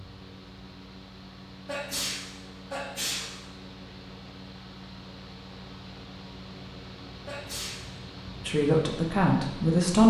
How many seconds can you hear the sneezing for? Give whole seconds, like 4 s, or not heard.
2 s.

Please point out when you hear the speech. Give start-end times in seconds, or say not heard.
8.4-10.0.